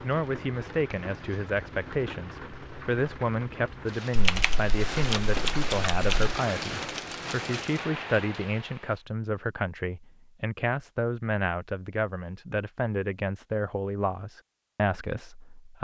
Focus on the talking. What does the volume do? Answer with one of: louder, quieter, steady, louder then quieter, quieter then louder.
steady.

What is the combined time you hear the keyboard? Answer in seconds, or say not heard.
2 s.